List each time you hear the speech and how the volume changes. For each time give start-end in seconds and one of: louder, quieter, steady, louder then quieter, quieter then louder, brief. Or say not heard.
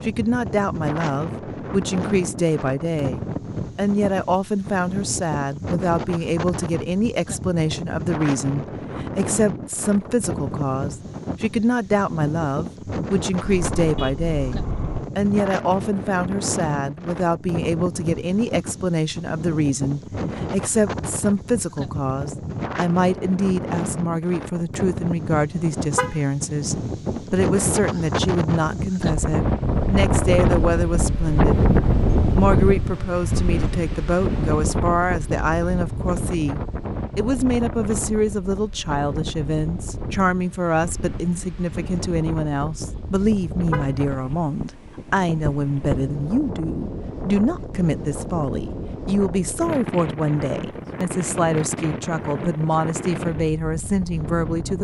0.0-31.7 steady
32.4-54.7 steady.